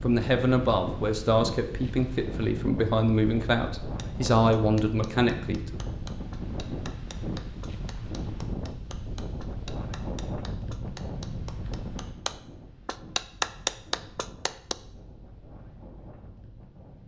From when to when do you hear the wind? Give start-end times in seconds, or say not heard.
0.0-17.0.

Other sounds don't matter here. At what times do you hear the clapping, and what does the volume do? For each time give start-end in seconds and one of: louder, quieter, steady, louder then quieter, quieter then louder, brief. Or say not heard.
3.8-14.8 louder.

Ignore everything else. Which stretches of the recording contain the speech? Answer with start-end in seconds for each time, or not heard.
0.0-5.8.